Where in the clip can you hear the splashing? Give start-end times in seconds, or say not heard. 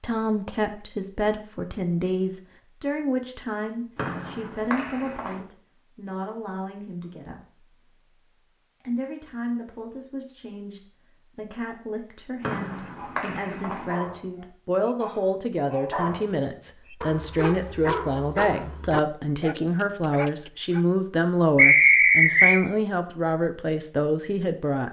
not heard.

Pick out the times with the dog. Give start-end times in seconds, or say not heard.
12.8-20.9.